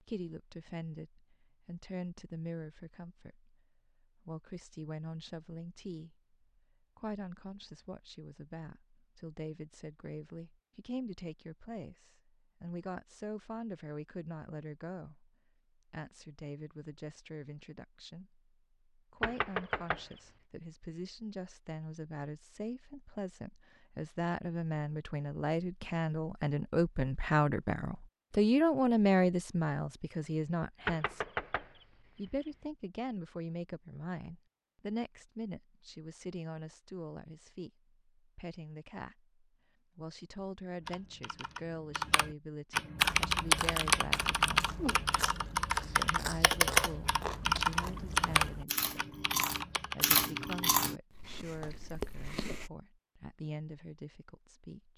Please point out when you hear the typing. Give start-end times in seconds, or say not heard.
40.8-50.7.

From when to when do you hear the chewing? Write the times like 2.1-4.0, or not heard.
43.0-52.7.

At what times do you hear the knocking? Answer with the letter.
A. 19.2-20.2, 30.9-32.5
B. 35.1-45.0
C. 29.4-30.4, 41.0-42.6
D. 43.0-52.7
A.